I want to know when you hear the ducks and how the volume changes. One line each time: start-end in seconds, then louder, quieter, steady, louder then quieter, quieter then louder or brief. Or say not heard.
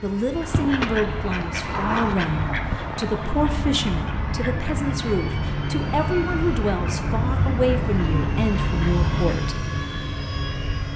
0.3-9.5 quieter.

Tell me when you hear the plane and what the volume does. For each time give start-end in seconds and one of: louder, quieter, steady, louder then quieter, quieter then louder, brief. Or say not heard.
0.0-10.9 louder.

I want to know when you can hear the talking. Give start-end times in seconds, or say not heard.
0.0-9.6.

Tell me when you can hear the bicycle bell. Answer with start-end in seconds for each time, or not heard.
not heard.